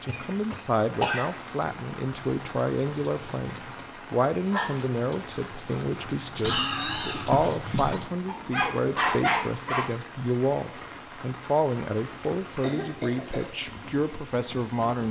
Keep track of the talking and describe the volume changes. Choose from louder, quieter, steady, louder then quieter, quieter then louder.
steady.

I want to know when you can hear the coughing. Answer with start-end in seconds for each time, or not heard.
0.1-1.2, 6.4-8.0, 12.6-13.4.